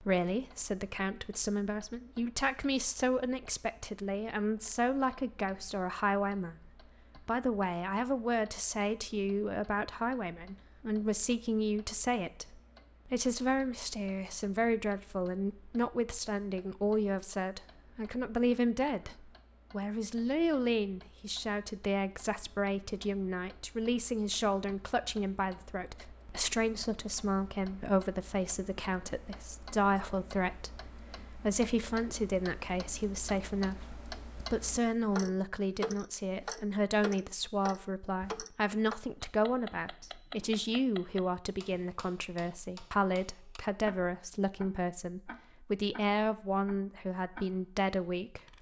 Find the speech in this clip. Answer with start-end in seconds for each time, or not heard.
0.0-48.4.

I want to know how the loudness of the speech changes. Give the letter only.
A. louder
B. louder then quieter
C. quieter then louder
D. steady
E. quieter
D.